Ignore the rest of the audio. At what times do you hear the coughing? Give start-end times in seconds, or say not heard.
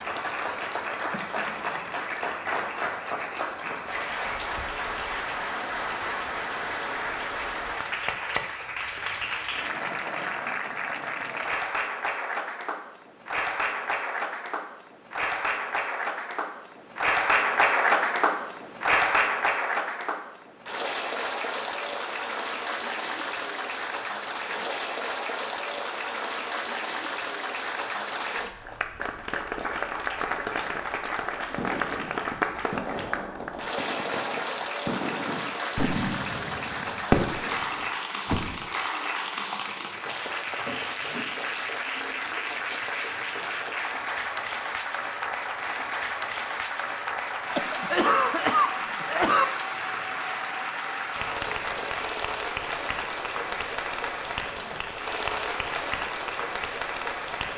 47.5-49.5.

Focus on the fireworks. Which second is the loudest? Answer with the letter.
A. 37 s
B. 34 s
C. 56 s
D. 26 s
A.